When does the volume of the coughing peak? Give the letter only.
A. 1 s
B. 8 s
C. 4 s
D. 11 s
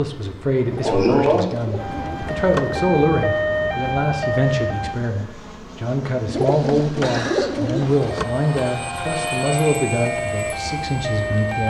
A.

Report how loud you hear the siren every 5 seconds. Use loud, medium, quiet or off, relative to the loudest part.
loud, medium, loud.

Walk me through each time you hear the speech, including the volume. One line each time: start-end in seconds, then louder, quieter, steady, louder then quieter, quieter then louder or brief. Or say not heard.
0.0-11.6 steady.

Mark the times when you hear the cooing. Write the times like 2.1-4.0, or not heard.
0.7-2.9, 6.2-8.2.